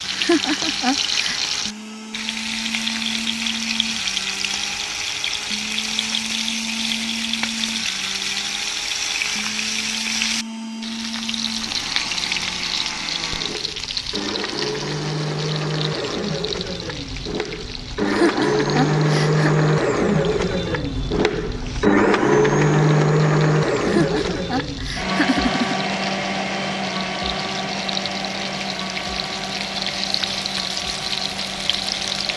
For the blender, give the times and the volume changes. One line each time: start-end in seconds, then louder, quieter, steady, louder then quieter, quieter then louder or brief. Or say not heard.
0.0-32.3 louder then quieter.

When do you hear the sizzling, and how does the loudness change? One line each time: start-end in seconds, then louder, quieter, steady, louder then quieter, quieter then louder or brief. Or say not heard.
0.0-32.3 quieter then louder.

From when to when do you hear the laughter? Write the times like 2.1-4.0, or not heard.
0.1-1.5, 18.1-19.5, 23.8-25.8.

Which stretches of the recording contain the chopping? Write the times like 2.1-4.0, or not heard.
not heard.